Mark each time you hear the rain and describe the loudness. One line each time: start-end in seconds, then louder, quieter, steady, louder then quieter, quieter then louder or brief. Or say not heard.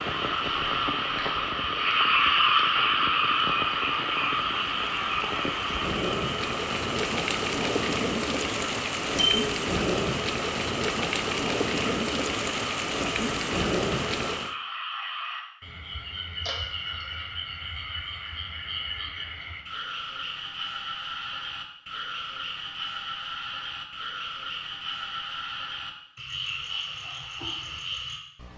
0.0-14.6 louder.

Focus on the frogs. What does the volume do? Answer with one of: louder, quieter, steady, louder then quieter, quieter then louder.
quieter.